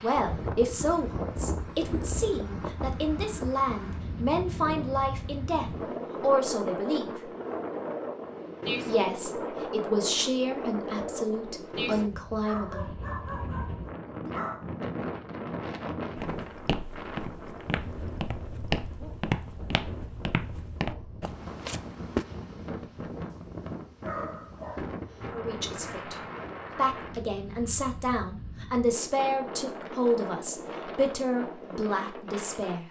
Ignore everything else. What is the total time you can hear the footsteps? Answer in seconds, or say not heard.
6 s.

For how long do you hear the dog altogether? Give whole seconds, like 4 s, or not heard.
4 s.